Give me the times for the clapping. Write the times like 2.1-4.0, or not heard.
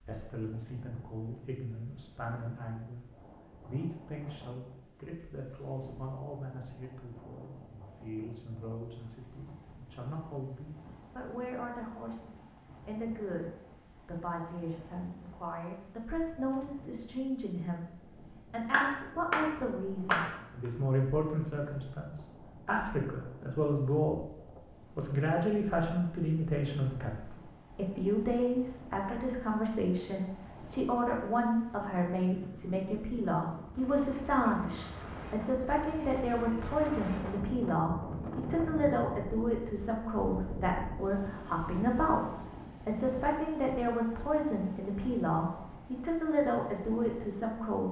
18.7-20.7.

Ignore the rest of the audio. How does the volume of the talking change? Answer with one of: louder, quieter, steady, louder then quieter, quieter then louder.
louder.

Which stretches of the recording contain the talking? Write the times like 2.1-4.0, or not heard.
0.0-24.3, 24.9-47.8.